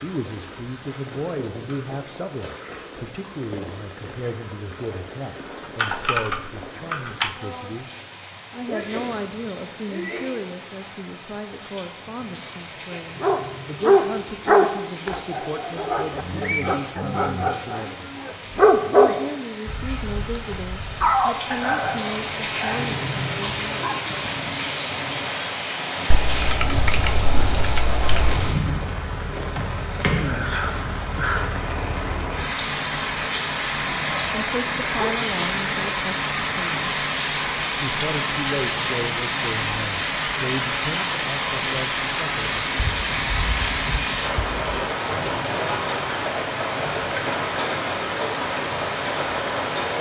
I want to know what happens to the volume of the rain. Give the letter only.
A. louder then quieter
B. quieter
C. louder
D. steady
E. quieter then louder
C.